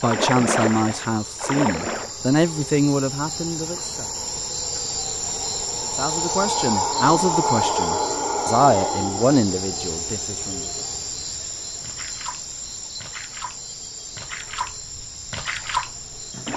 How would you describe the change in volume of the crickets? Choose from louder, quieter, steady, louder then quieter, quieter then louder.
louder then quieter.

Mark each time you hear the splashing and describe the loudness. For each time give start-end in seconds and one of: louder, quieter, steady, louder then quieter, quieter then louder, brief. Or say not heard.
0.0-2.1 brief
11.8-16.5 louder.